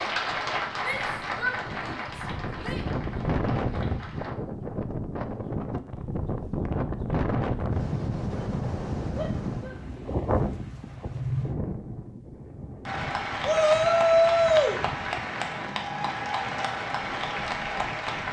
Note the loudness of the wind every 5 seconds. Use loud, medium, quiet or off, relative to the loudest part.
loud, loud, loud, medium.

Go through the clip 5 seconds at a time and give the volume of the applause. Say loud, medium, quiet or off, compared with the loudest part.
loud, off, loud, loud.